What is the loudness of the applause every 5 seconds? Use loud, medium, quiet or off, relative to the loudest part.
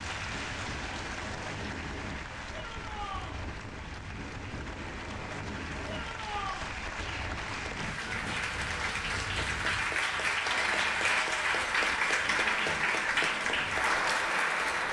quiet, medium, loud.